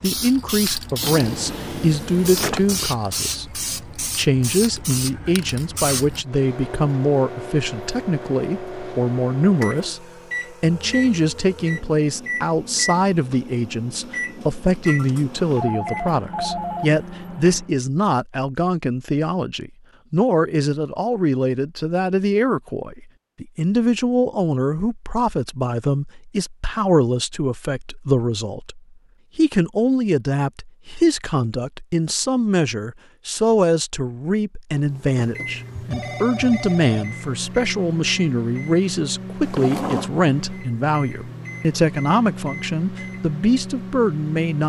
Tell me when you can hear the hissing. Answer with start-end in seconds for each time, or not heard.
0.0-6.2.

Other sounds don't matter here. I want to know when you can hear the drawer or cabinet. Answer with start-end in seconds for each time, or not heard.
1.0-2.9, 39.4-40.1.